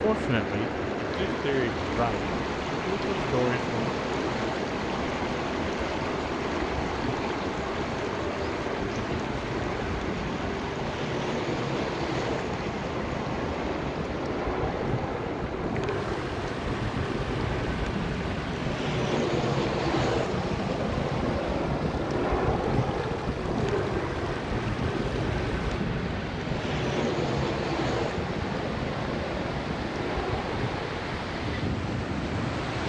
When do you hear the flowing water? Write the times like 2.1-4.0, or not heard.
0.0-32.8.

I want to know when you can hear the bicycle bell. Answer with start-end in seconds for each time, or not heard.
not heard.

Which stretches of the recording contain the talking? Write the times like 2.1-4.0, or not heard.
0.0-3.9.